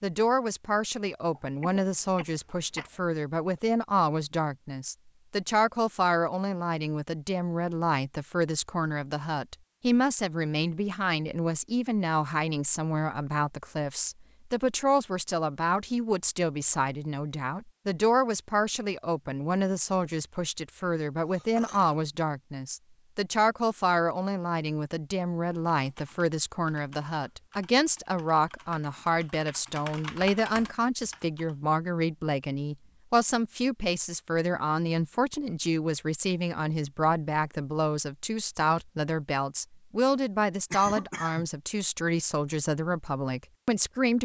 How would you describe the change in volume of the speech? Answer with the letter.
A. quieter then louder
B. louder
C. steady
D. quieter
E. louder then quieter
C.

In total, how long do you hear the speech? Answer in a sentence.
The speech can be heard for 44 seconds in total.